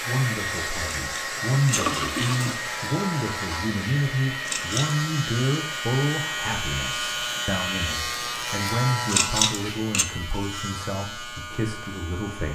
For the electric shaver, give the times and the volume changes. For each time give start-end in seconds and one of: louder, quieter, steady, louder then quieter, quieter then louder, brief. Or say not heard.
0.0-12.5 louder then quieter.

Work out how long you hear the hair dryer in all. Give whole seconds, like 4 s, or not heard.
9 s.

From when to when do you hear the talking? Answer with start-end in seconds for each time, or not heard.
0.0-12.5.